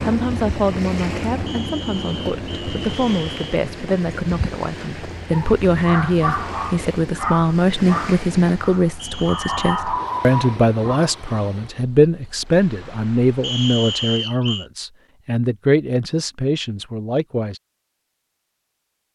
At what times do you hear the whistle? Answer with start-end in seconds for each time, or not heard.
1.4-3.5, 8.9-9.8, 13.4-14.7.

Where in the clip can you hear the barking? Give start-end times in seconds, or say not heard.
5.3-11.3.